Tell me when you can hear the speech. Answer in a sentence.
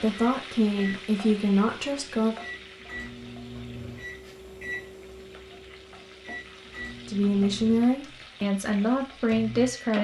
The speech can be heard from 0.0 to 2.4 s and from 7.0 to 9.9 s.